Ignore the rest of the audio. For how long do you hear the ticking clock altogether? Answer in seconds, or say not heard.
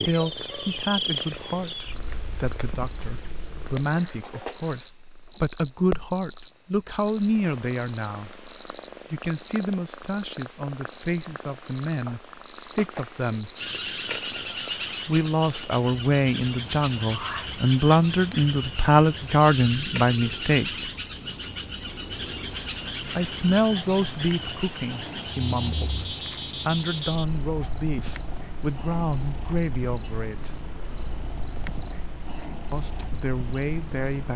not heard.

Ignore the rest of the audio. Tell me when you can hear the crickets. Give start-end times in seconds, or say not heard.
0.0-34.3.